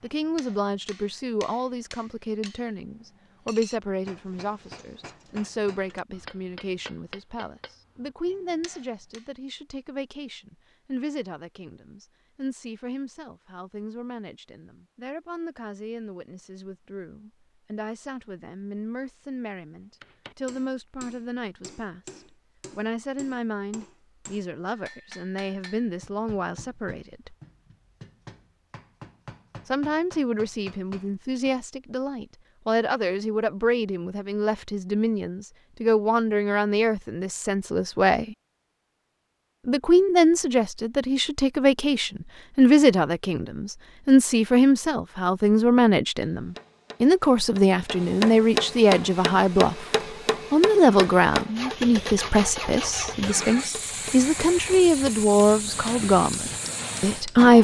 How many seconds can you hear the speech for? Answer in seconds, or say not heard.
53 s.